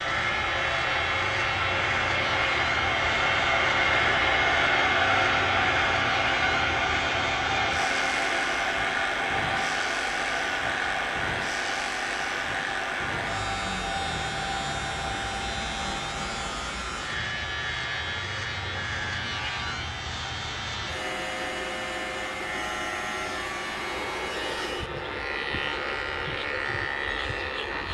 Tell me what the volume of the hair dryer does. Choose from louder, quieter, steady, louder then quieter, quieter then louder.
quieter.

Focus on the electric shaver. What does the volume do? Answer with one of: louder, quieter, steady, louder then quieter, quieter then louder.
steady.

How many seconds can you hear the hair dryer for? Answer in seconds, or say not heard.
28 s.